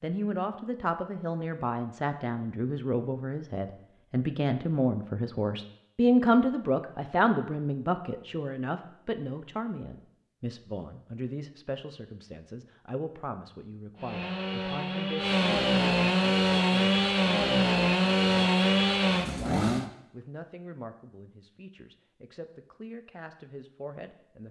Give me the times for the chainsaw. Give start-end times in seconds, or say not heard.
13.9-19.9.